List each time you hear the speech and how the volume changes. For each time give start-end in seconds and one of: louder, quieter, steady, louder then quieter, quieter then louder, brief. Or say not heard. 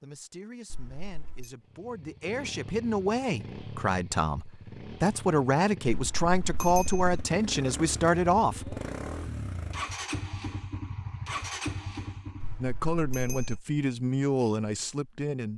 0.0-8.8 louder
12.6-15.5 brief.